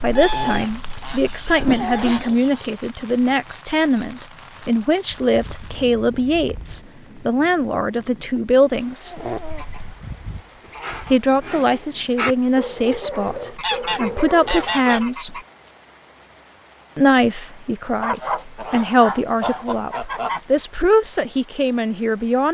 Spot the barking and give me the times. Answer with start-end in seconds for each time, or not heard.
0.0-2.4, 9.1-15.1.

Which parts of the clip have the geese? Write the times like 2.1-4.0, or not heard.
0.1-2.6, 5.0-6.9, 9.5-11.2, 13.6-15.4, 18.0-20.4.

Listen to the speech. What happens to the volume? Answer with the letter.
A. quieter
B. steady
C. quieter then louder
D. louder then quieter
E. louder
B.